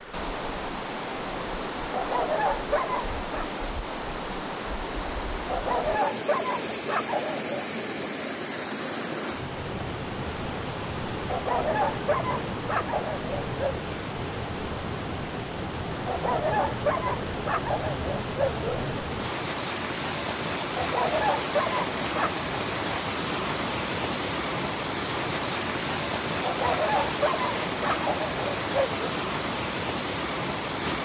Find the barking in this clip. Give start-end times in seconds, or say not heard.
1.9-3.5, 5.5-7.7, 11.2-13.6, 16.1-19.0, 20.8-22.4, 26.4-29.2.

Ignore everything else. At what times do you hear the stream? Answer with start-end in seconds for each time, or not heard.
0.0-31.0.